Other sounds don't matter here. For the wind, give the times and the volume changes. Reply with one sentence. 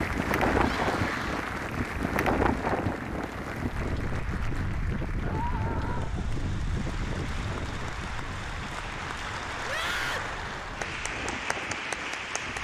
You can hear the wind from 0.0 to 12.5 s, getting quieter.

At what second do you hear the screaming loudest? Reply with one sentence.
The volume of the screaming peaks at 10 seconds.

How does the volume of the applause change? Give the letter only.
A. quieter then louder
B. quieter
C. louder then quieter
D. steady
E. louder
A.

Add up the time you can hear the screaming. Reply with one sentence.
The screaming can be heard for 3 seconds in total.